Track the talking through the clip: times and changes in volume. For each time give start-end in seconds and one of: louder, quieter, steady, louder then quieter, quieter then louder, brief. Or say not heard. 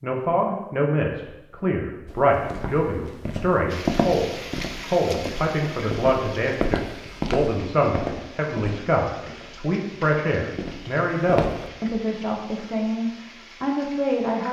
0.0-14.4 steady.